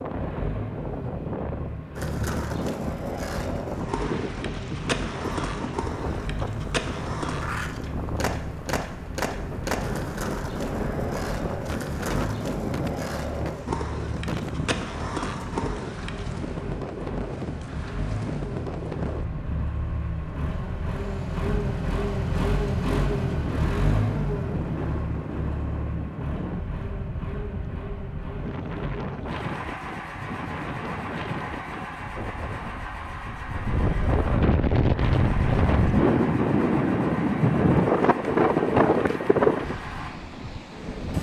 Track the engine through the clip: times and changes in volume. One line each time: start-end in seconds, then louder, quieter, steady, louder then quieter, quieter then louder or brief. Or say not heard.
0.0-41.1 louder then quieter.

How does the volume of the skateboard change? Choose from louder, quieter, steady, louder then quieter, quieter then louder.
steady.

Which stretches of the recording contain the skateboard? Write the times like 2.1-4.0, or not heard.
1.9-16.4.